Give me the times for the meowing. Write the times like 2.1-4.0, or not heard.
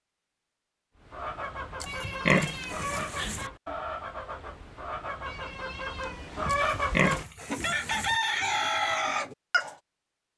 1.9-3.5, 5.2-6.5.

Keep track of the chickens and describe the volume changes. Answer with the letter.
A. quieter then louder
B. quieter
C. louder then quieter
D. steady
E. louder
E.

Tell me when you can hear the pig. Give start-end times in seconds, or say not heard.
1.8-3.5, 6.5-8.2.